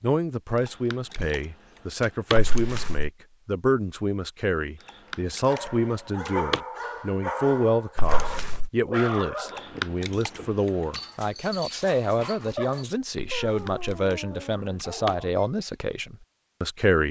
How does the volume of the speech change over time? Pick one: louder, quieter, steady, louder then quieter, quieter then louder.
steady.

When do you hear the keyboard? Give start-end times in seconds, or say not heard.
0.6-2.4, 4.8-6.6, 9.4-11.0, 13.4-15.2.